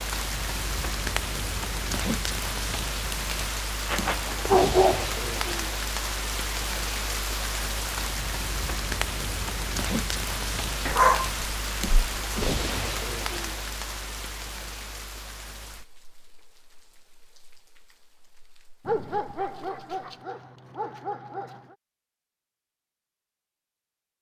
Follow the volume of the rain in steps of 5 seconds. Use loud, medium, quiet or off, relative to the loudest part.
loud, loud, loud, quiet, off.